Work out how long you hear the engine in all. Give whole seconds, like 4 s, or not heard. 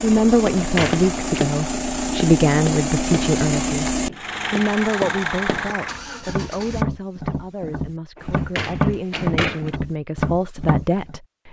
7 s.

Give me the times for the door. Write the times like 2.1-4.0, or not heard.
0.6-1.4, 8.2-9.7.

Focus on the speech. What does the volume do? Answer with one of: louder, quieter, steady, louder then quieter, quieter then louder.
quieter then louder.